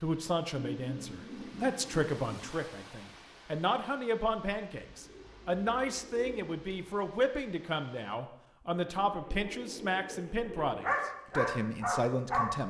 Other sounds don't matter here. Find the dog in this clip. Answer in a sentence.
The dog can be heard from 10.8 to 12.5 s.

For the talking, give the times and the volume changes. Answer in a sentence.
The talking can be heard from 0.0 to 12.6 s, at a steady volume.